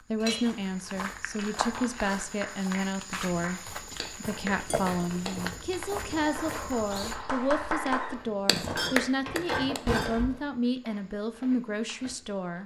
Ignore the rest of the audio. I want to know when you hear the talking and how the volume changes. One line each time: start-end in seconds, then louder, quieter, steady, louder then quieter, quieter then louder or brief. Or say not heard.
0.1-12.6 steady.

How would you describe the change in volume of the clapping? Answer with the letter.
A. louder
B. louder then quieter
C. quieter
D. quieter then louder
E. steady
A.